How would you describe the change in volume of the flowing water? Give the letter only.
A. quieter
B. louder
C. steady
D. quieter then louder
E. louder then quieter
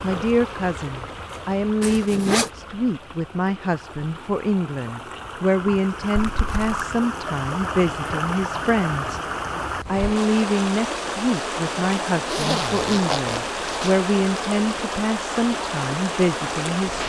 B.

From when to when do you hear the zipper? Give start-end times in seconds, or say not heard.
1.8-2.5, 6.2-6.9, 12.2-13.9.